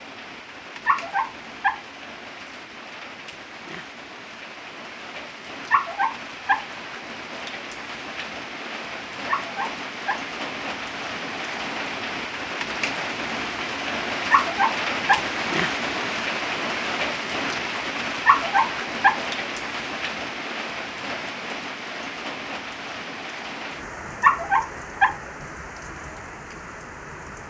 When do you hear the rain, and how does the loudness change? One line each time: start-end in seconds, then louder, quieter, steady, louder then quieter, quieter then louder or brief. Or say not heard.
0.0-27.4 louder then quieter.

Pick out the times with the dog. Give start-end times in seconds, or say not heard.
0.8-1.8, 5.7-6.7, 9.2-10.2, 14.3-15.2, 18.2-19.2, 24.2-25.1.